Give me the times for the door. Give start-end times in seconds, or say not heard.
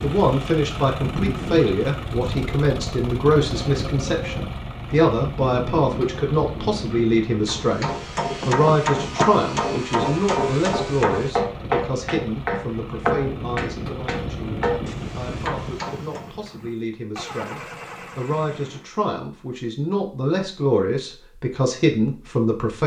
8.4-10.0.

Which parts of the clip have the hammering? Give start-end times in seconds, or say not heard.
7.5-16.4.